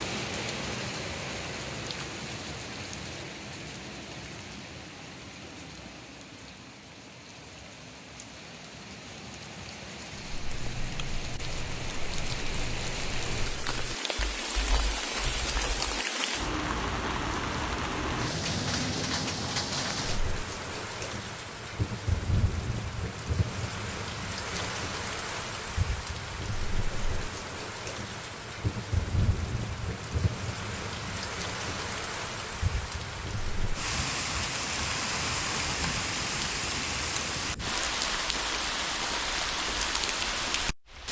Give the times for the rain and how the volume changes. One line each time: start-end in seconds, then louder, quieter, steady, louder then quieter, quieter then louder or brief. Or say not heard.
0.0-41.0 louder.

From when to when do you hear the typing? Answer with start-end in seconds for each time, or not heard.
10.3-16.0.